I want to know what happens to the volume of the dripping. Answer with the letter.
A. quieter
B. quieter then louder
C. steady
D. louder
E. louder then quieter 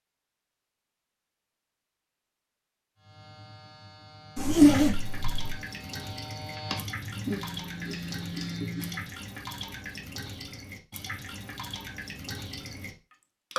C.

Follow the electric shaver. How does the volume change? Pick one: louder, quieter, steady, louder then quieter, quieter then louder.
louder.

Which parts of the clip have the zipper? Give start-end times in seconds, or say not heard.
4.3-5.5.